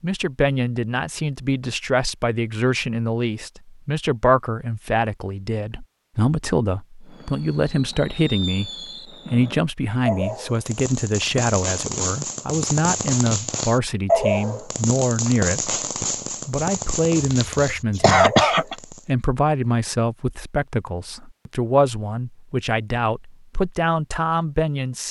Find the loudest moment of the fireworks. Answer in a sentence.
The volume of the fireworks peaks at 14 seconds.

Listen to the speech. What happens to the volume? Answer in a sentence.
The volume of the speech stays about the same.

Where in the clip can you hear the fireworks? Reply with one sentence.
You can hear the fireworks from 7.0 to 19.1 s.